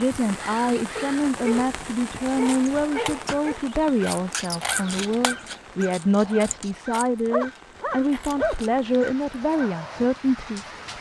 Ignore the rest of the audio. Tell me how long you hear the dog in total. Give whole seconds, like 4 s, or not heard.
4 s.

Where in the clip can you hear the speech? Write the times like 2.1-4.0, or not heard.
0.0-10.9.